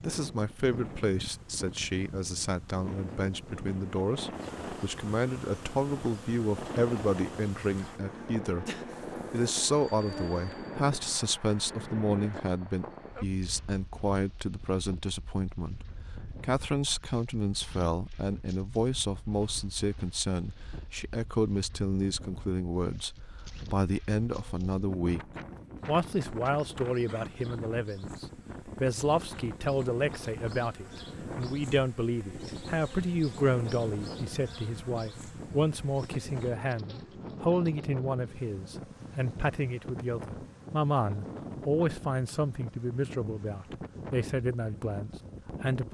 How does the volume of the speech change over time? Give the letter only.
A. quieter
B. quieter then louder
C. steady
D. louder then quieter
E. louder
C.